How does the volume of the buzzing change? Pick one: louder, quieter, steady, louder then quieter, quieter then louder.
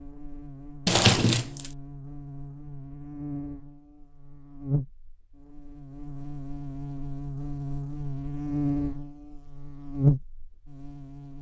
louder.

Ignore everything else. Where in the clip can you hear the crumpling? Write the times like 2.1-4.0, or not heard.
0.8-1.7.